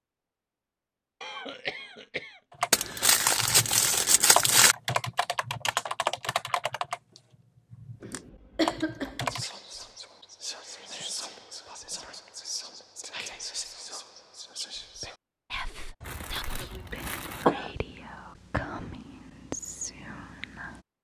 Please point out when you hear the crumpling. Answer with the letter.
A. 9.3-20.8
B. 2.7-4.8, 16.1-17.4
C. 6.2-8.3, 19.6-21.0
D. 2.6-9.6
B.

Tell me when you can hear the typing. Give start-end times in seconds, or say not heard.
2.6-9.6.